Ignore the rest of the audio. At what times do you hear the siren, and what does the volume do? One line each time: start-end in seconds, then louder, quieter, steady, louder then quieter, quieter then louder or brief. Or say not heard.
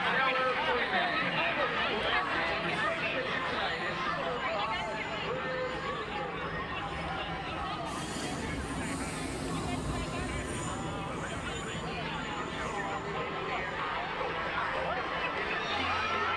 not heard.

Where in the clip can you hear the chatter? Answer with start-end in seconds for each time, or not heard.
0.0-16.3.